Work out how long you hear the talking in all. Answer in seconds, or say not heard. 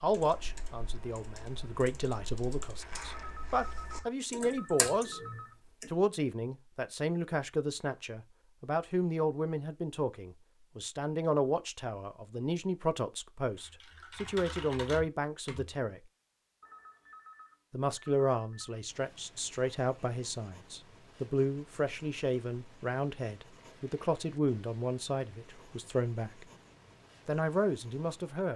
25 s.